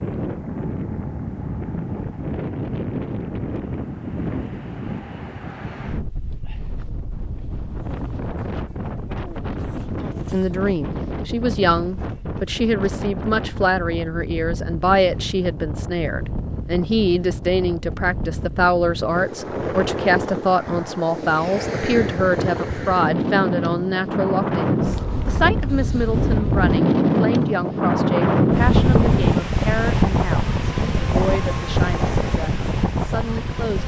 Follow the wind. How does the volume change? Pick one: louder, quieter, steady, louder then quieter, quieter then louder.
louder.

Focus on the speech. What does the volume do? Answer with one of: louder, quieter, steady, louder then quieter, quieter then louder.
quieter.